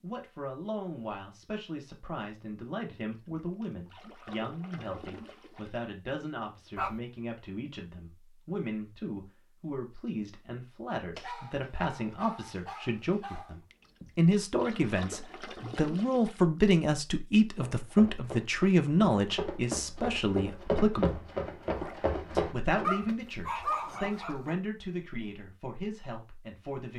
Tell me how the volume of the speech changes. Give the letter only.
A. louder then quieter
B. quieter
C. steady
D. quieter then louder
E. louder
A.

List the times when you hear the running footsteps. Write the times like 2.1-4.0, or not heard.
17.6-22.9.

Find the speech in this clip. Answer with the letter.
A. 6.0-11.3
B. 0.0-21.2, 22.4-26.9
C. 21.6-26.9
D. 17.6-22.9
B.